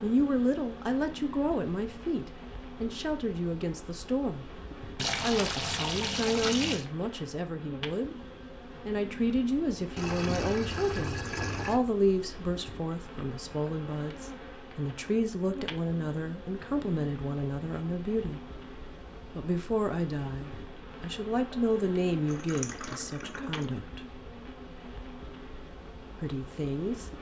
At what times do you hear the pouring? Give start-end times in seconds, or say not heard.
5.0-6.8, 9.9-11.8, 22.2-23.6.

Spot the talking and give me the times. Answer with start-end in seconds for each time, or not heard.
0.0-4.6, 5.2-18.4, 19.4-24.1, 26.2-27.1.